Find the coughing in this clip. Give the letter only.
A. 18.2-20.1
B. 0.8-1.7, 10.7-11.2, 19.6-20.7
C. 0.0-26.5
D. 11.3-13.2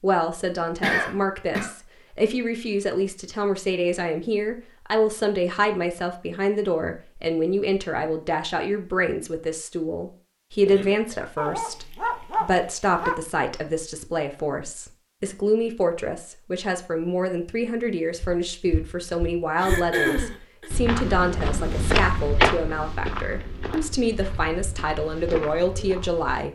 B.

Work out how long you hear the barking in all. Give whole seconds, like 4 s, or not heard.
2 s.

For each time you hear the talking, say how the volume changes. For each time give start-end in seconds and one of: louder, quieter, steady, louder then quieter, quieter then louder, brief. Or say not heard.
0.0-26.5 steady.